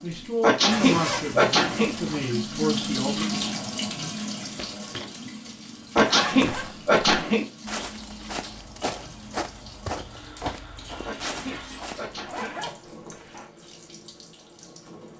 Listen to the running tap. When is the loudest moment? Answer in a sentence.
The loudest moment of the running tap is at 3 seconds.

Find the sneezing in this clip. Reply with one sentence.
You can hear the sneezing from 0.4 to 1.9 s, from 6.0 to 7.5 s and from 11.1 to 12.6 s.